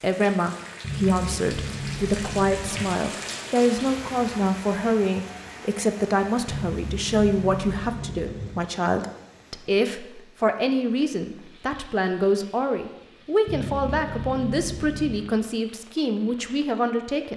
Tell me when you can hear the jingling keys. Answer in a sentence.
You can hear the jingling keys from 0.8 to 2.9 s, from 6.5 to 8.5 s and from 13.4 to 15.2 s.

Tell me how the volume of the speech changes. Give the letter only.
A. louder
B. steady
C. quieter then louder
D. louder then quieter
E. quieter
B.